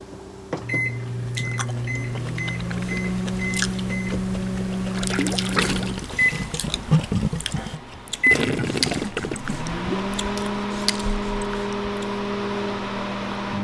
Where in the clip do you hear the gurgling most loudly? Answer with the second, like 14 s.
7 s.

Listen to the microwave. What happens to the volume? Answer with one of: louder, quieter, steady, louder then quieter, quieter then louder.
steady.